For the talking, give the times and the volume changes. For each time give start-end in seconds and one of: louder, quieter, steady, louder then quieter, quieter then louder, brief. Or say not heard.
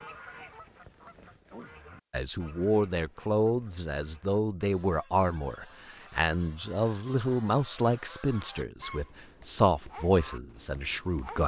2.1-11.4 steady.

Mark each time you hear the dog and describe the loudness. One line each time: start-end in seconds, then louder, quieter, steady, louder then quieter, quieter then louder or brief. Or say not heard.
not heard.